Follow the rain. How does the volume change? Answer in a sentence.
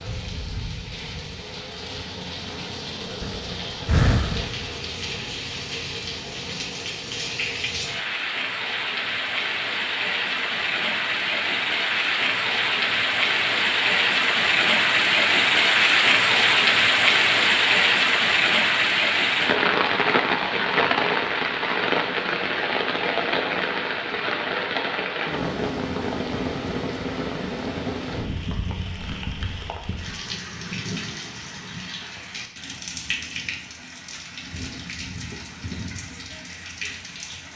The loudness of the rain goes up, then down.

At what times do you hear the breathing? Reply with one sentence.
You can hear the breathing from 3.2 to 4.8 s.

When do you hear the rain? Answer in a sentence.
The rain can be heard from 0.0 to 37.5 s.